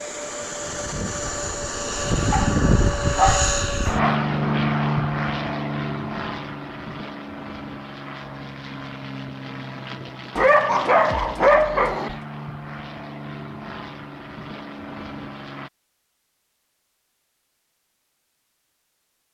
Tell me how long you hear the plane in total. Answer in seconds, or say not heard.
16 s.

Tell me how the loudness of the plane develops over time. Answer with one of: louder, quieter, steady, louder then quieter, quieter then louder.
quieter.